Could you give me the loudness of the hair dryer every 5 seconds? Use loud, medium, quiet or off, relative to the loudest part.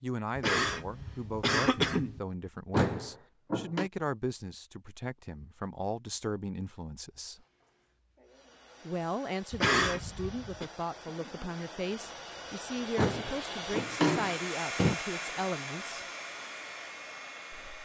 off, quiet, loud, loud.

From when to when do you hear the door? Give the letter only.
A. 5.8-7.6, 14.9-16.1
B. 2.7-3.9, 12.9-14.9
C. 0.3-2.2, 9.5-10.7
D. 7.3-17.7
B.